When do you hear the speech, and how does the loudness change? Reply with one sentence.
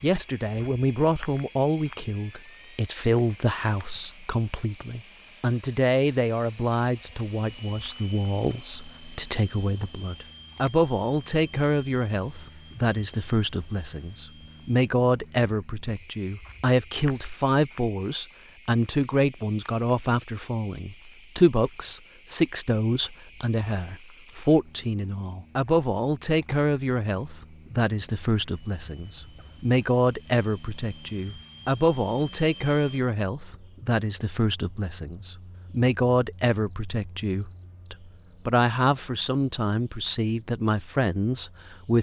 The speech can be heard from 0.0 to 41.9 s, at a steady volume.